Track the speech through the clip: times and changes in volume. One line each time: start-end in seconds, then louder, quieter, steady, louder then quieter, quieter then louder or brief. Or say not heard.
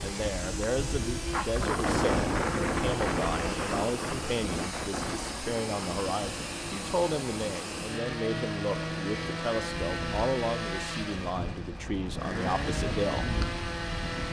0.0-13.3 steady.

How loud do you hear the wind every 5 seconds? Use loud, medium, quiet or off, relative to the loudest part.
loud, medium, medium.